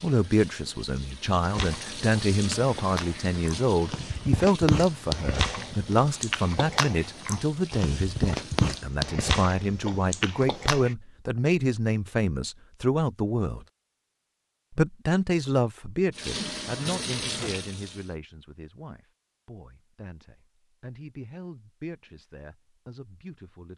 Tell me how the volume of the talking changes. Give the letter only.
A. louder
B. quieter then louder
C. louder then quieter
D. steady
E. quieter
E.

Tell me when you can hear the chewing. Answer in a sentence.
You can hear the chewing from 1.5 to 10.9 s.